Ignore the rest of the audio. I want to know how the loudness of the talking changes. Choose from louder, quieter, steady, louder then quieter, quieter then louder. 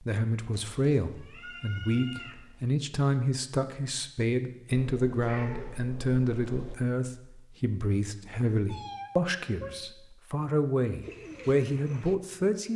steady.